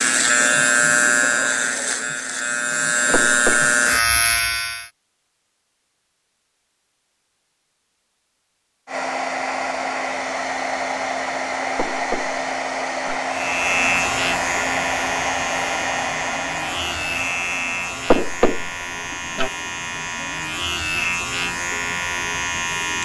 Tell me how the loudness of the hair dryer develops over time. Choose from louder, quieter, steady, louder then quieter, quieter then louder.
quieter.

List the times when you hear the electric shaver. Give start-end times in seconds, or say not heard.
0.0-4.9, 13.3-23.0.